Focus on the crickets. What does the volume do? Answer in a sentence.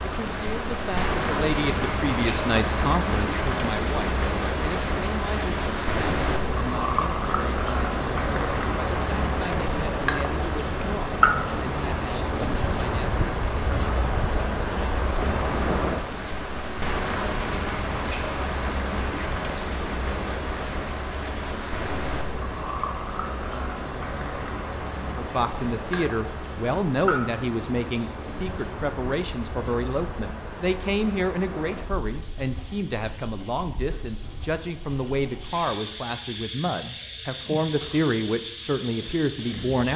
The volume of the crickets goes down.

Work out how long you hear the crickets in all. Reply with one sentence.
The crickets can be heard for 40 seconds in total.